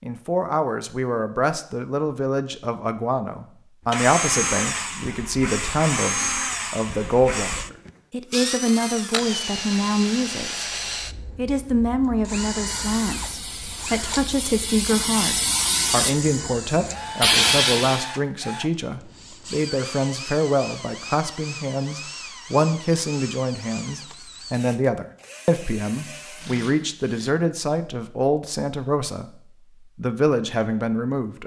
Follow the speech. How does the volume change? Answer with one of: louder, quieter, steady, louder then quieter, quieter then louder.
steady.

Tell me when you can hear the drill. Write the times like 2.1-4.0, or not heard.
3.9-27.4.